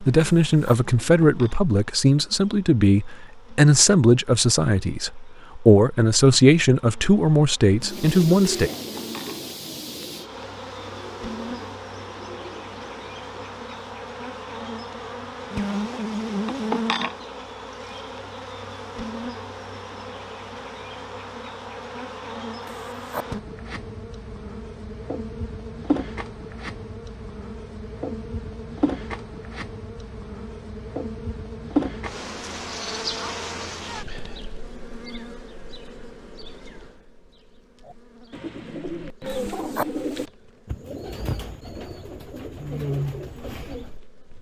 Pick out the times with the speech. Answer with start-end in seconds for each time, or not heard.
0.0-8.7.